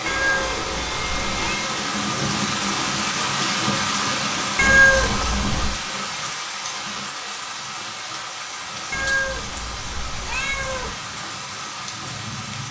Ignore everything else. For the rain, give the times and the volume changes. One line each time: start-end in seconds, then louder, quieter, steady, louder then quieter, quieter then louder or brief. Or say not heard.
0.0-12.6 quieter.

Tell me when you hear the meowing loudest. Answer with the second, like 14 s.
5 s.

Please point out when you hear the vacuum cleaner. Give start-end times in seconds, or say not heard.
0.0-1.8.